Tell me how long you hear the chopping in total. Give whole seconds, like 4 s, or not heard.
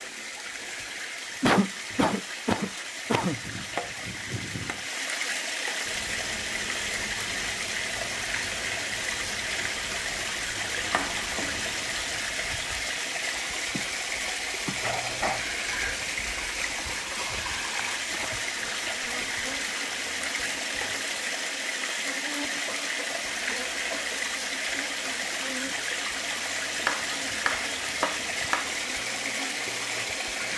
5 s.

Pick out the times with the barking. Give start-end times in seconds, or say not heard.
not heard.